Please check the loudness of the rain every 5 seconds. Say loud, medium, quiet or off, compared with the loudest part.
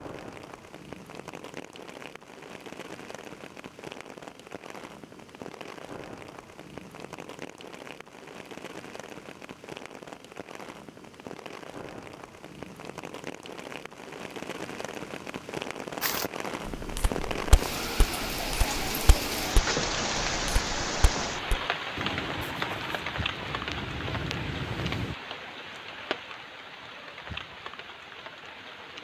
medium, medium, medium, loud, loud, medium.